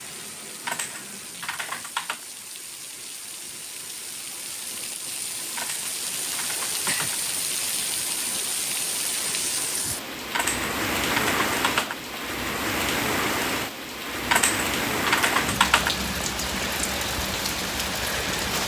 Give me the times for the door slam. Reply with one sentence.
The door slam can't be heard in this clip.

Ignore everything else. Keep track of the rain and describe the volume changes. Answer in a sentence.
The loudness of the rain goes up.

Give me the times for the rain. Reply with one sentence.
You can hear the rain from 0.0 to 18.6 s.